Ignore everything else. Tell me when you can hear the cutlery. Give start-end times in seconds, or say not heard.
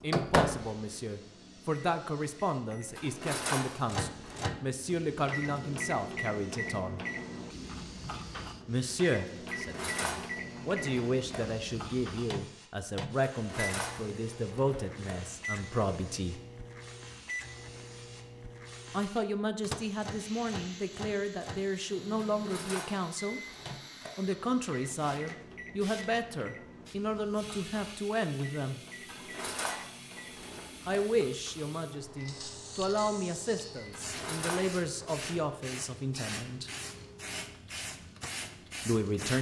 2.9-4.5, 9.3-11.4, 13.3-15.2, 22.3-24.1, 28.9-31.0, 33.8-35.2.